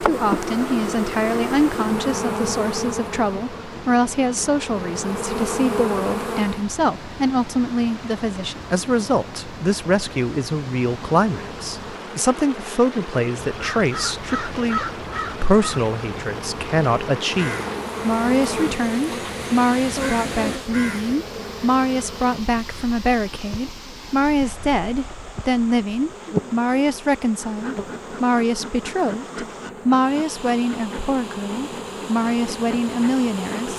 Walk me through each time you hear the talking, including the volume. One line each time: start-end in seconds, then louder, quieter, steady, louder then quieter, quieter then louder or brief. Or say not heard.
0.0-33.7 steady.